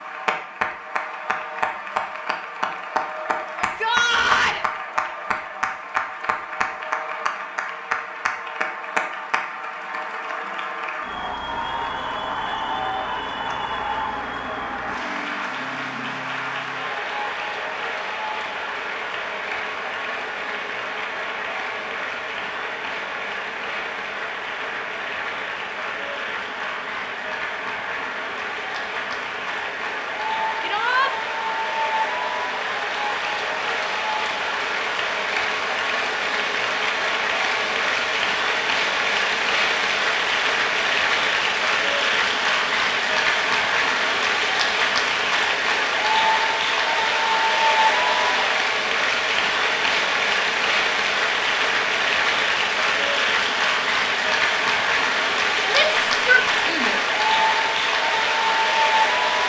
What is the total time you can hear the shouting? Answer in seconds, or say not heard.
3 s.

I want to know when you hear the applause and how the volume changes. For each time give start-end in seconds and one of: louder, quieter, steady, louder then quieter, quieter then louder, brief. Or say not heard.
0.0-59.4 louder.